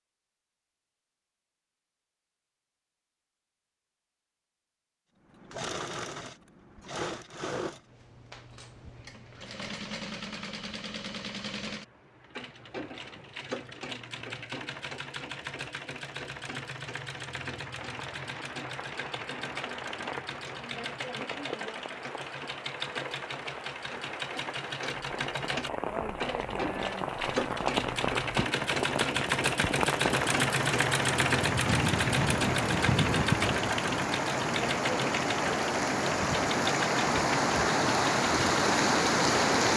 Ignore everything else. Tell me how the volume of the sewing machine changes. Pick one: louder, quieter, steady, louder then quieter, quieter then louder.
louder.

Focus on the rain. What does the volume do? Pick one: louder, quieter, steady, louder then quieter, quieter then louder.
louder.